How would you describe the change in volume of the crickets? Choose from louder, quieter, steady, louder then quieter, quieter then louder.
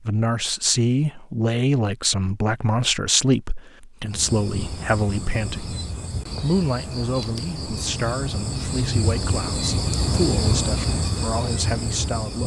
louder.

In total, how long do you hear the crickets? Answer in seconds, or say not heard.
8 s.